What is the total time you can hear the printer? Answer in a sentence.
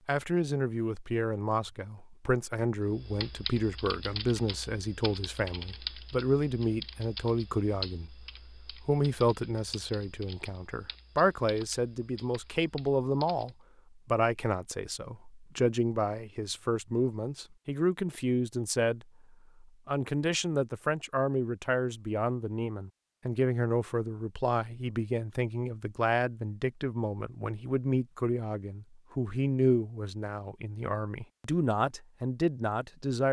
The printer can't be heard in this clip.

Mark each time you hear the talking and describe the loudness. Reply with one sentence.
You can hear the talking from 0.1 to 33.2 s, at a steady volume.